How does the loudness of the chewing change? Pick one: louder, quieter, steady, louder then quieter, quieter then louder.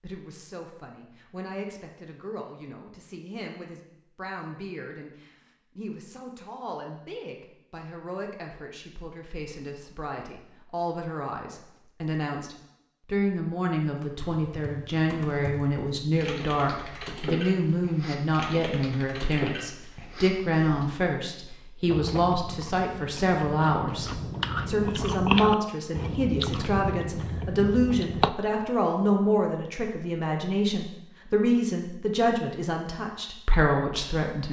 louder then quieter.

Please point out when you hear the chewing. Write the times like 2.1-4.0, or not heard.
21.9-28.3.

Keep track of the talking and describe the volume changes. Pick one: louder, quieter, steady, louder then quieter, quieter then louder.
louder.